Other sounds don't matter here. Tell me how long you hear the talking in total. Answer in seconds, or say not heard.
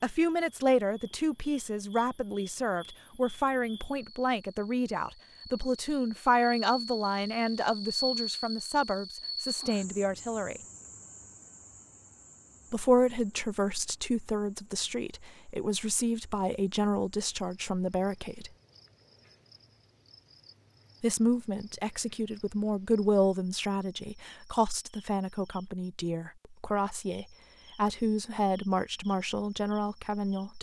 26 s.